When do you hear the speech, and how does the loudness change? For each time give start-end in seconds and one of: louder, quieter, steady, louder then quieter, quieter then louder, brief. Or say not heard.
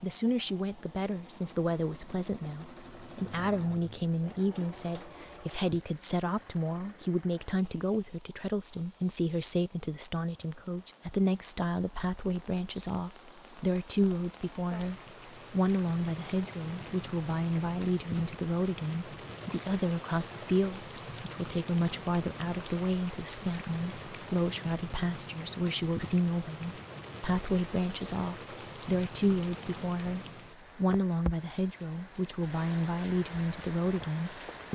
0.0-34.6 steady.